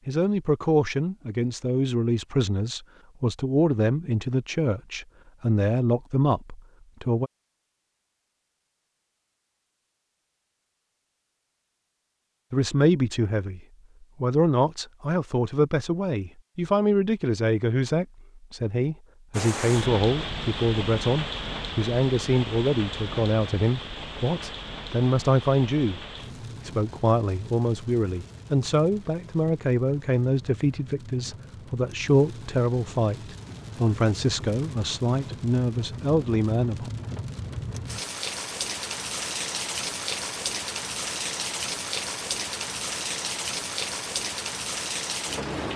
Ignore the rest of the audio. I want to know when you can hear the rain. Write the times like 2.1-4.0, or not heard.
19.3-45.7.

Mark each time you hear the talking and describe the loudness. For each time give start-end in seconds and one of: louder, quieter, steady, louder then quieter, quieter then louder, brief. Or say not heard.
0.1-7.3 steady
12.5-26.0 steady
26.6-36.9 steady.